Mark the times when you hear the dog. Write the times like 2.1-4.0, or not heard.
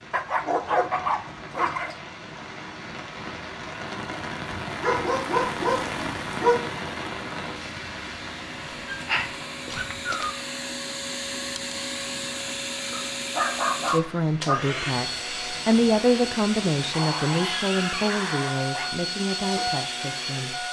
0.1-1.9, 4.8-6.6, 8.9-10.3, 12.9-14.6, 16.9-18.9.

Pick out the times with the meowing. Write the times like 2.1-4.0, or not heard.
not heard.